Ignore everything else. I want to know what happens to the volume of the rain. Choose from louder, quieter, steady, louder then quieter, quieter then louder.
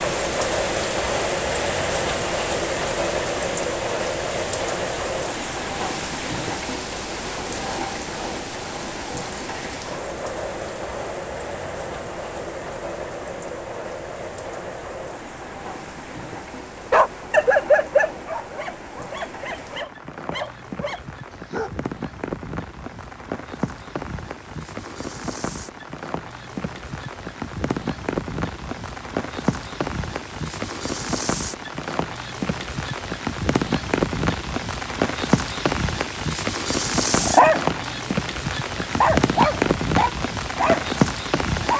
quieter then louder.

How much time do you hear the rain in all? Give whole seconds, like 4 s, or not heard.
42 s.